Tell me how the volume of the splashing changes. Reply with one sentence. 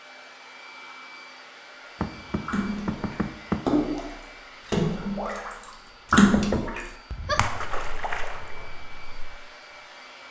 The volume of the splashing goes up, then down.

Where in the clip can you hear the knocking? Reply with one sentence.
The knocking can be heard from 2.0 to 3.6 s and from 6.1 to 7.8 s.